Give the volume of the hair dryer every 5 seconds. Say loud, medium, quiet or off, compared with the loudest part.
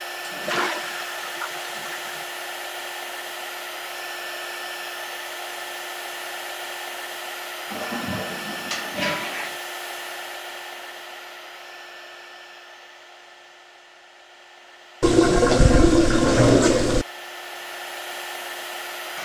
loud, loud, medium, loud.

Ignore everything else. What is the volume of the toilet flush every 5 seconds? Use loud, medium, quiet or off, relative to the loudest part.
quiet, quiet, off, loud.